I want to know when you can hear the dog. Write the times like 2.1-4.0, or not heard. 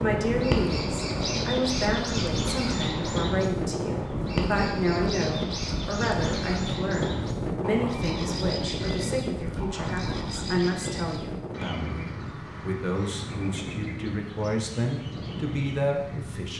not heard.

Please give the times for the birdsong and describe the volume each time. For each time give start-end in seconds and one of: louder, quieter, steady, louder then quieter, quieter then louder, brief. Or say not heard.
0.0-16.5 quieter.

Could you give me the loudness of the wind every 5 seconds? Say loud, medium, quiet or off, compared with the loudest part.
loud, loud, medium, medium.